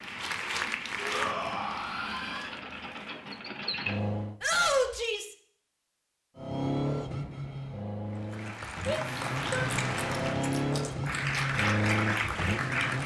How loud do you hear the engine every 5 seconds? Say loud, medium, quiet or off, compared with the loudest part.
medium, loud, loud.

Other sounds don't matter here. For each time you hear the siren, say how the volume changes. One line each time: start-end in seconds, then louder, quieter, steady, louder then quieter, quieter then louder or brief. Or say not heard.
not heard.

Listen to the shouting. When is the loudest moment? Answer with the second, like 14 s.
5 s.